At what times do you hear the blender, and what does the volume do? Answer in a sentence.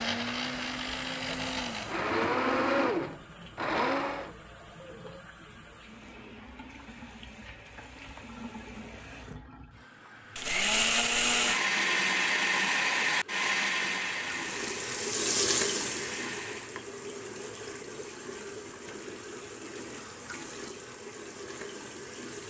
The blender can be heard from 0.0 to 4.3 s, getting louder; and from 10.3 to 16.8 s, getting quieter.